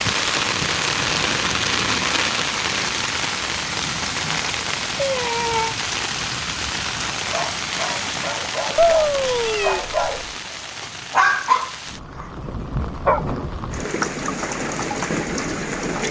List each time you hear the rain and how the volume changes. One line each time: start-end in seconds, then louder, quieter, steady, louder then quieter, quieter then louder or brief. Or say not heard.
0.0-16.0 quieter then louder.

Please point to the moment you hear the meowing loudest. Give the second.
9 s.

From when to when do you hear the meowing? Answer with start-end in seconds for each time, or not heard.
5.0-5.8, 8.8-10.1.